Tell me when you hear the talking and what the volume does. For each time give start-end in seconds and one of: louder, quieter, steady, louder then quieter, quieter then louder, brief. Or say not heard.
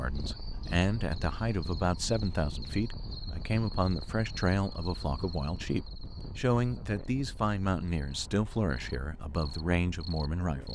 0.0-10.7 steady.